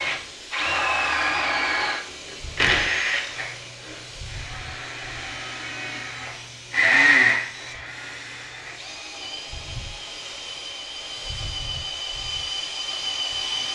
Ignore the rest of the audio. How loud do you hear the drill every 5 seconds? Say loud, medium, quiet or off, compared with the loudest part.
loud, loud, medium.